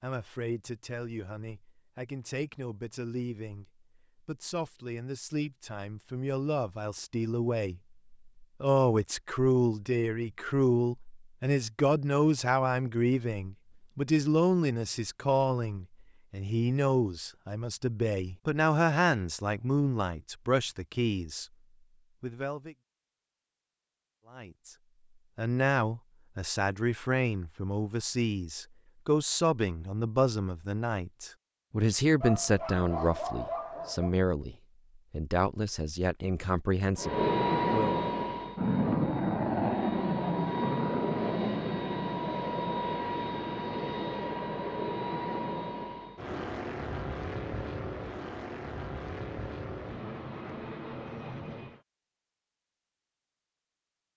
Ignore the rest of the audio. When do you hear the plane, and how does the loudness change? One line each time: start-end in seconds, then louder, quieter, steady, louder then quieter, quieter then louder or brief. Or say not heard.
37.0-51.8 quieter.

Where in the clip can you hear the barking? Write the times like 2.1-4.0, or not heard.
32.2-34.1.